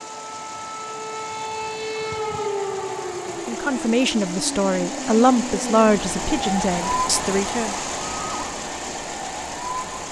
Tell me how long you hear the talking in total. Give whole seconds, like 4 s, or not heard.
4 s.